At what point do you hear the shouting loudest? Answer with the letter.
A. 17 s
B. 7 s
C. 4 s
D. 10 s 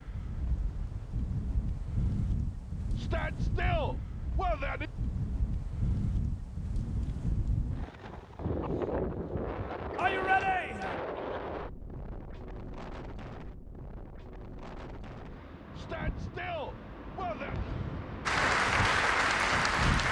D.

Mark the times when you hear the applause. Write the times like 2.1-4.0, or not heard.
18.2-20.0.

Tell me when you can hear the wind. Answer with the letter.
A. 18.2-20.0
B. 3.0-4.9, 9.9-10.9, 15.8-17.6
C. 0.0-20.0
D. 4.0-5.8
C.